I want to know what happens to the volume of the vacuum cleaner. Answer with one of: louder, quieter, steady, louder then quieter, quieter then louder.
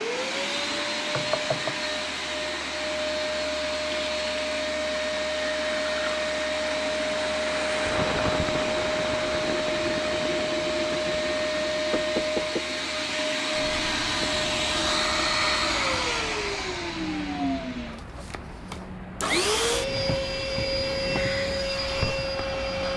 steady.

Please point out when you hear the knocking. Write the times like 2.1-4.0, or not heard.
1.1-1.8, 11.9-12.6.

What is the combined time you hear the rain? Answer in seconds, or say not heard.
23 s.